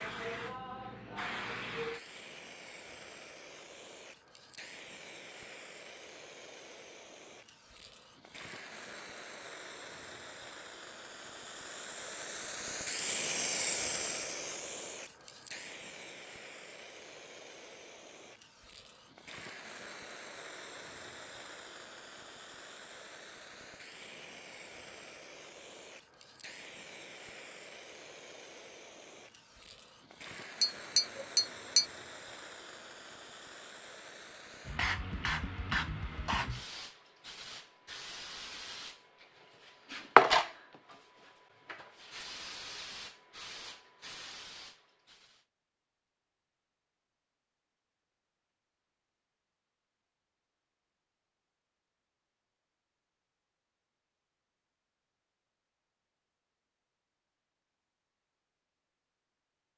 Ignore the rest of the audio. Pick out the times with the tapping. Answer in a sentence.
The tapping can be heard from 30.6 to 31.9 s.